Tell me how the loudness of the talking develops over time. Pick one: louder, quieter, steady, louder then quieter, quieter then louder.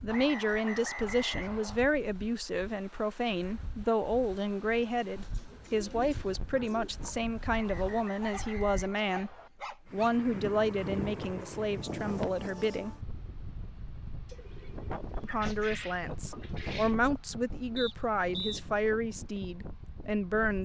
steady.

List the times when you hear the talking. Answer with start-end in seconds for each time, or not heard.
0.0-12.9, 15.2-20.6.